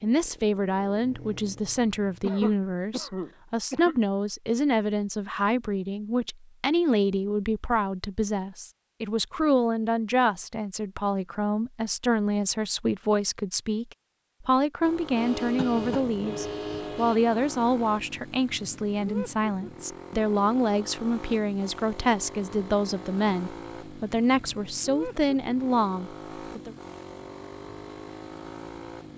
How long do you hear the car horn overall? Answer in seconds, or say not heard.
2 s.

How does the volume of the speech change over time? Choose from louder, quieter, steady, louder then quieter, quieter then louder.
steady.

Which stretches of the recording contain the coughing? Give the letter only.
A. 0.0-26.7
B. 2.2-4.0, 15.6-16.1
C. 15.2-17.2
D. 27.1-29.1
B.